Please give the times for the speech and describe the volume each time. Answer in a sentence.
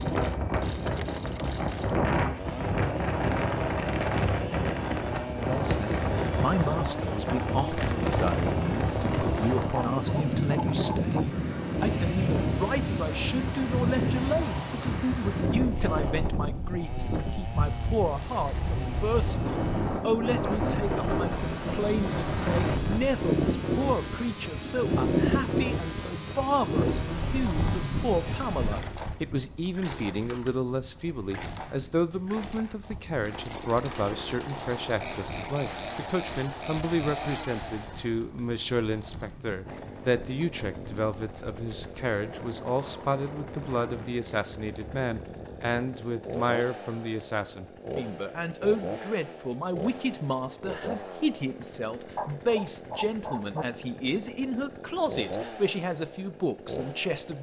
You can hear the speech from 5.4 to 57.3 s, at a steady volume.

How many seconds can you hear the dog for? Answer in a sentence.
You can hear the dog for 3 seconds altogether.